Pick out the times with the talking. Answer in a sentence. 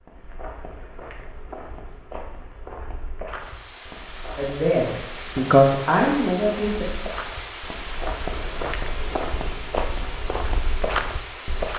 You can hear the talking from 4.3 to 6.8 s.